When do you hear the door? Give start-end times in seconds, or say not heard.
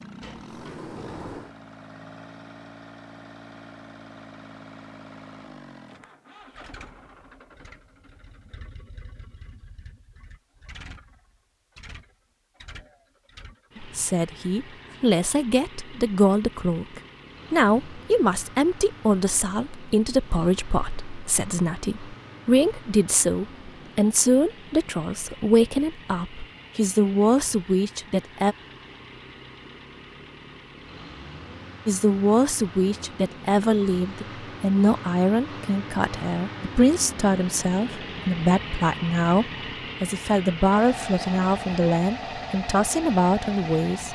0.2-1.6.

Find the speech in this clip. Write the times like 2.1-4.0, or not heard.
13.8-28.6, 31.9-44.0.